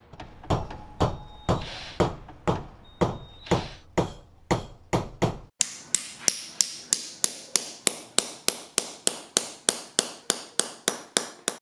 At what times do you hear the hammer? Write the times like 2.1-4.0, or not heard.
0.1-11.5.